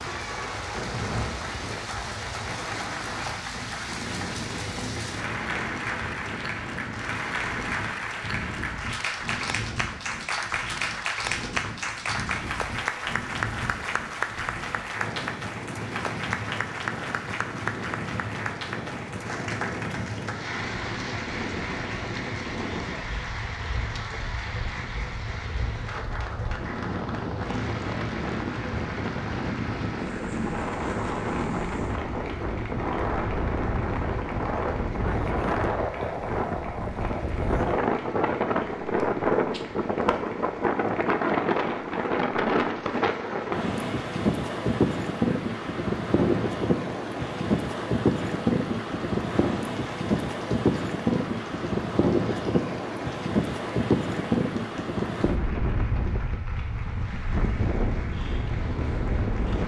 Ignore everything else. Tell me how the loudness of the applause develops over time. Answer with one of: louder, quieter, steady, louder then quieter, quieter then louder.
quieter.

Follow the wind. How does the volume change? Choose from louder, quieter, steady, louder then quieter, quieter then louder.
louder.